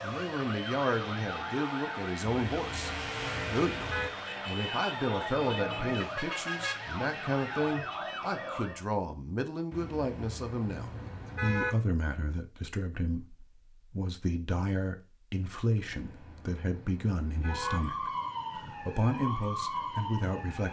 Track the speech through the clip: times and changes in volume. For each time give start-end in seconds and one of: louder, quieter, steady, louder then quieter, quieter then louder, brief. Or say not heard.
0.0-20.6 steady.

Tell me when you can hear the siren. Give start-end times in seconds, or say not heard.
0.0-8.8, 17.4-20.6.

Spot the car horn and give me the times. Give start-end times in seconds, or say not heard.
2.5-4.1, 9.7-11.8, 15.8-17.8.